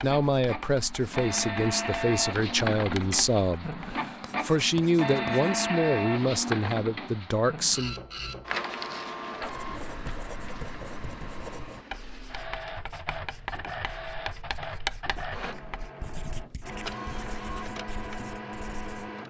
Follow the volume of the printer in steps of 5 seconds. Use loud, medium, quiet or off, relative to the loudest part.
loud, loud, medium, medium.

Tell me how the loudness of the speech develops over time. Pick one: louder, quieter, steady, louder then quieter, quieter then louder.
steady.